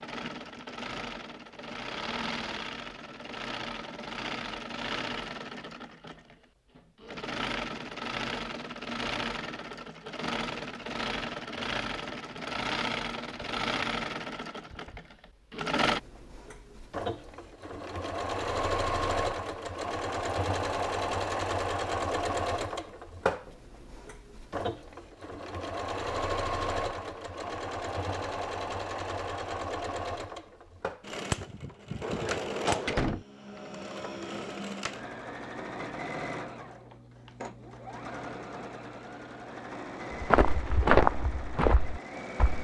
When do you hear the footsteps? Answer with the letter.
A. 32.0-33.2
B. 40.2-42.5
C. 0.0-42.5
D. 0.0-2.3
B.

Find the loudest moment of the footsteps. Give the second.
41 s.